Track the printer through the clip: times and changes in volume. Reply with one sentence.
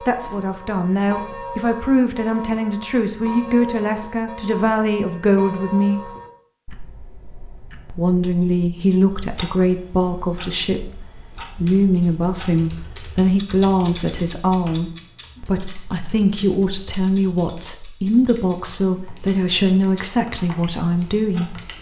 You can't hear the printer here.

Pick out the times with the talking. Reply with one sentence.
You can hear the talking from 0.1 to 6.1 s and from 7.8 to 21.6 s.